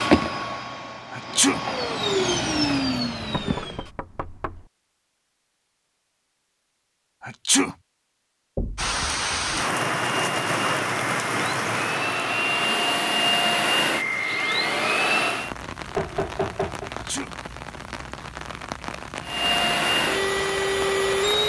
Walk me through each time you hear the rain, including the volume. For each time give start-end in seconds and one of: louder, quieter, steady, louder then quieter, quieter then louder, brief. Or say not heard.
8.8-21.4 quieter.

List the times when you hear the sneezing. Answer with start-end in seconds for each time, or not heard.
1.1-1.6, 7.2-7.8, 16.9-17.4.